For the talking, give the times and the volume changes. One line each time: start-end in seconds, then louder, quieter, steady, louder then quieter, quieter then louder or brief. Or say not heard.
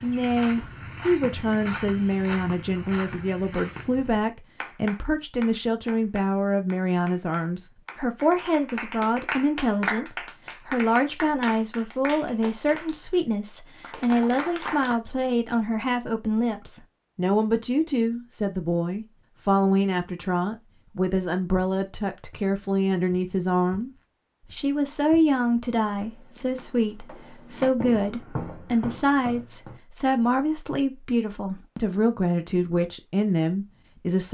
0.0-23.9 steady
24.5-34.3 steady.